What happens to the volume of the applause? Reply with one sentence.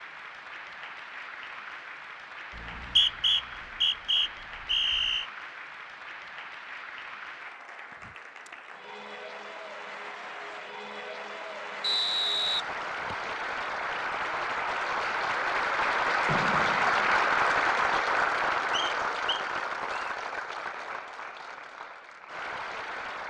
The loudness of the applause goes up, then down.